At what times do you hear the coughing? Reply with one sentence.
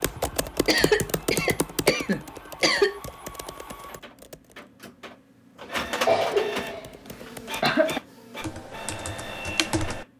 You can hear the coughing from 0.7 to 3.0 s and from 6.0 to 8.0 s.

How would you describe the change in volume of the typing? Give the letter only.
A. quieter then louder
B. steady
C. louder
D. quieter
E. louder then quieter
A.